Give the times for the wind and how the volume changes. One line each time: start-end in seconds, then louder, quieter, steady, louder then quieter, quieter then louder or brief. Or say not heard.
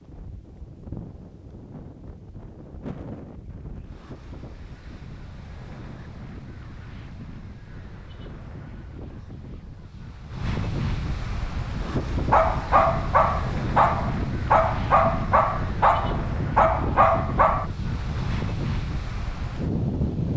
0.0-20.3 louder.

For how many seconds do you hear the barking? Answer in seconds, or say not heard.
5 s.